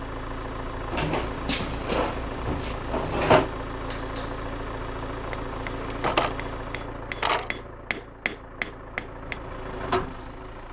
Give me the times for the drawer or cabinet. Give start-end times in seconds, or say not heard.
0.9-3.5, 5.7-7.5.